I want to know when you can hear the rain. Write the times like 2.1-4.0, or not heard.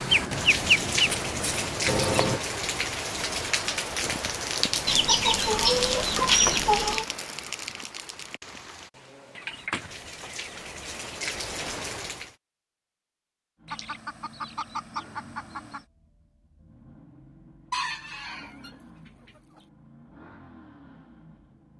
0.0-12.3.